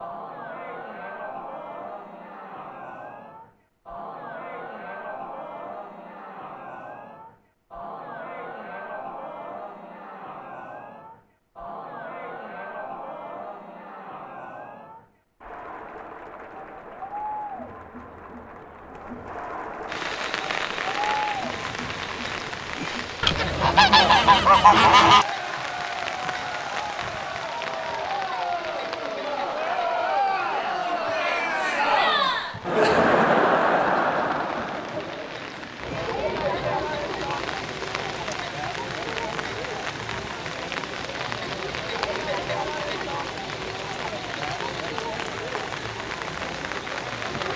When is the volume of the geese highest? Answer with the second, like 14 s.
25 s.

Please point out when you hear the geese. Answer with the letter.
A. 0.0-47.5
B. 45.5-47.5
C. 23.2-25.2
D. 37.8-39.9
C.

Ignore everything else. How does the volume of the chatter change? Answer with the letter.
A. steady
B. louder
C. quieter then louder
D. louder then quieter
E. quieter
D.